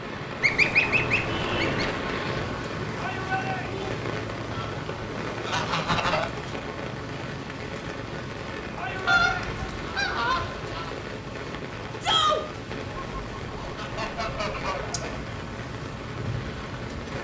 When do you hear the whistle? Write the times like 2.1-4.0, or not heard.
not heard.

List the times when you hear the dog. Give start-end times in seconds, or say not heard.
not heard.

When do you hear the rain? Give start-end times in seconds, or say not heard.
0.0-17.1.